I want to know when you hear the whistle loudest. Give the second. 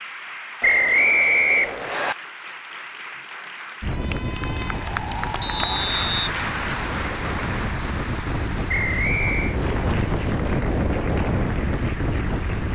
1 s.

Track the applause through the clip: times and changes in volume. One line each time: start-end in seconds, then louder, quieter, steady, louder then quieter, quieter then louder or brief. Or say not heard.
0.0-12.6 louder then quieter.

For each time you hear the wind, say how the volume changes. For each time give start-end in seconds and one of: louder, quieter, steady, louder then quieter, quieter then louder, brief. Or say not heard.
3.8-12.6 louder.